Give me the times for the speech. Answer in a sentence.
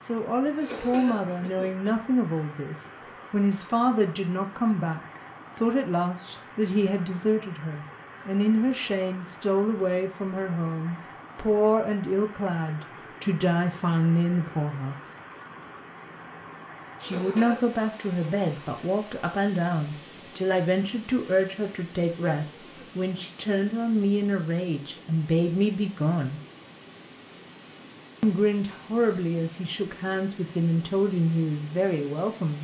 You can hear the speech from 0.0 to 15.2 s, from 17.0 to 26.4 s and from 28.2 to 32.5 s.